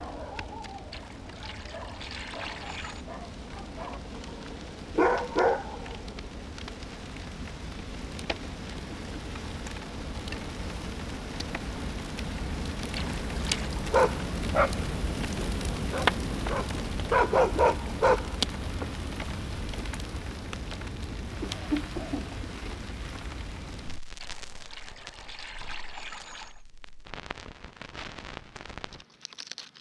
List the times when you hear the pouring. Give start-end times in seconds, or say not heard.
0.9-3.0, 12.9-13.8, 24.2-26.6.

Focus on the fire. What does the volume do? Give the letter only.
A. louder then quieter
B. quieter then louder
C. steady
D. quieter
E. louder
A.